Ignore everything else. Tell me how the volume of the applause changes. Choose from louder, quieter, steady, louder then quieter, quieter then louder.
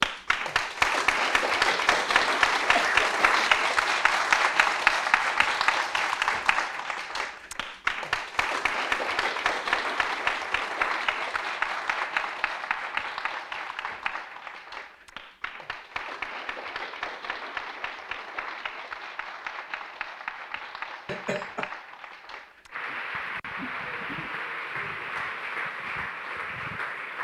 quieter.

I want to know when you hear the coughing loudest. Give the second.
3 s.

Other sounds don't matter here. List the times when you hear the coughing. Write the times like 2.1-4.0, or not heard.
1.7-3.5, 21.1-21.7.